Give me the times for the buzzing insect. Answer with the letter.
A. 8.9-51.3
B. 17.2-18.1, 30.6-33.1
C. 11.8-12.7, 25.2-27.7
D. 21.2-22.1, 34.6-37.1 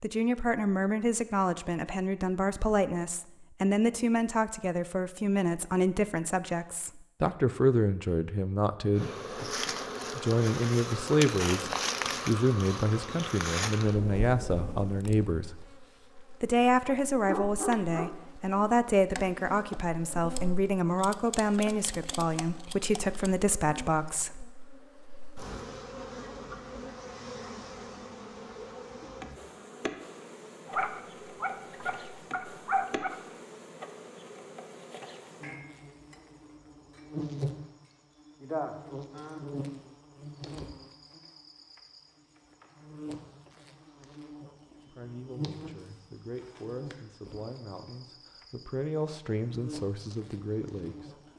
A.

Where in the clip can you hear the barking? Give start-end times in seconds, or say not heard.
17.2-18.1, 30.6-33.1.